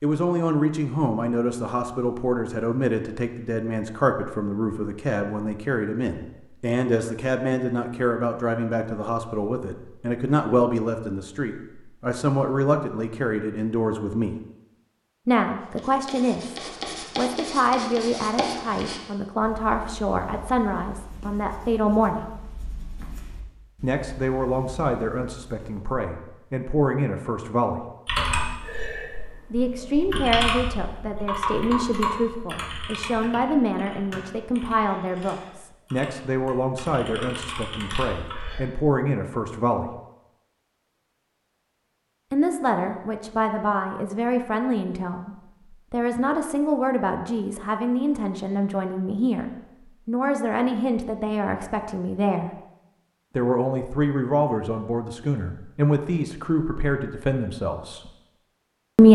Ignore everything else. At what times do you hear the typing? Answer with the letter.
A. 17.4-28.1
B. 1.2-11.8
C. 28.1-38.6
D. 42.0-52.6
C.